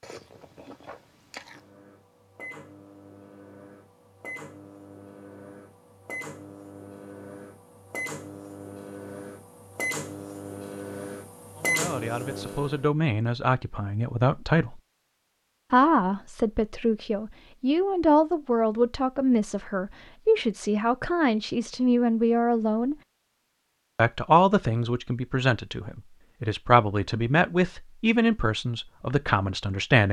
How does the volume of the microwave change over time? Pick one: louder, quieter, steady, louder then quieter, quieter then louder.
louder.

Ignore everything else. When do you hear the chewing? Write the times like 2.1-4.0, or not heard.
0.0-1.7.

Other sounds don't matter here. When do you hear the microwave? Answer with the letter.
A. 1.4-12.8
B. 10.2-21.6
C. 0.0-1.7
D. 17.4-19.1
A.